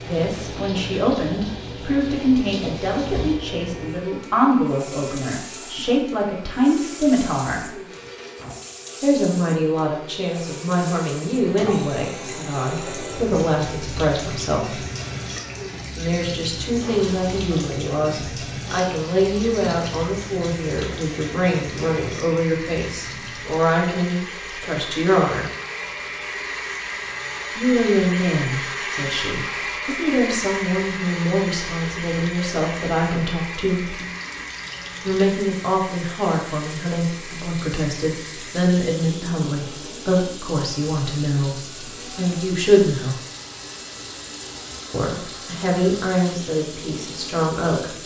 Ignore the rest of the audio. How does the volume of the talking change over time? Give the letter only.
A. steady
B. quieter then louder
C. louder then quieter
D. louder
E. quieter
A.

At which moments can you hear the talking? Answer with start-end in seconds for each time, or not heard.
0.0-7.8, 9.0-14.8, 15.9-25.5, 27.6-34.0, 35.0-43.1, 44.9-48.0.